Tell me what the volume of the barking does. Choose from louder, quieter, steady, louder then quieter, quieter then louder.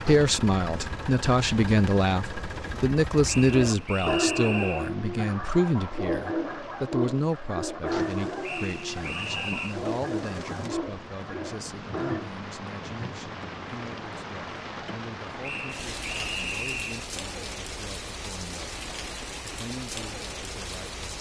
quieter.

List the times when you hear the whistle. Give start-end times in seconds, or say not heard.
3.2-4.9, 8.4-9.8, 15.4-17.1.